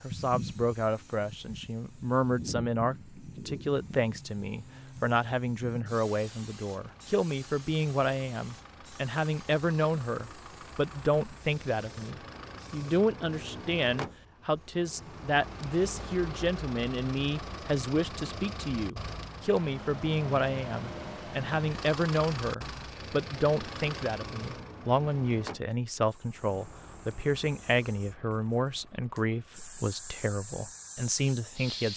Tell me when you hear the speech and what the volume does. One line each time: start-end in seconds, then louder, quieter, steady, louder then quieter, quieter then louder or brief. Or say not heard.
0.0-31.9 steady.